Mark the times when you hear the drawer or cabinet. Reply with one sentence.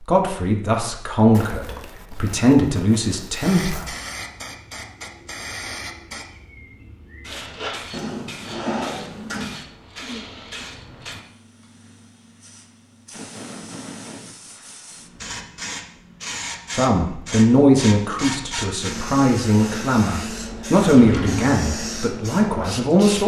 You can hear the drawer or cabinet from 7.9 to 9.6 s and from 20.9 to 21.6 s.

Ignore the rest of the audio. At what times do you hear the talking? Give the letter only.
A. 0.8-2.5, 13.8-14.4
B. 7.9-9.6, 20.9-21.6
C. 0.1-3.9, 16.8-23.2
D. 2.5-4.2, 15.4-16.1
C.